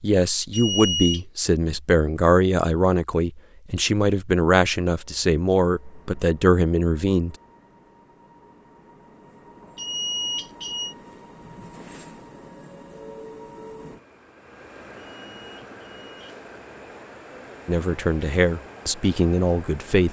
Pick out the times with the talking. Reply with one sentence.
You can hear the talking from 0.0 to 7.3 s and from 17.6 to 20.0 s.